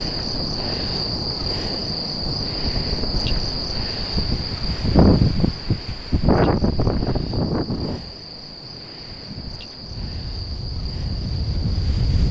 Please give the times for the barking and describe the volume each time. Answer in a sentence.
You can't hear the barking here.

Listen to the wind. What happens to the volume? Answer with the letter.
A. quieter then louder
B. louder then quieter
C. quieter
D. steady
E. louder
B.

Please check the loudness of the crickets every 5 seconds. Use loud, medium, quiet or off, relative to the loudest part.
loud, medium, medium.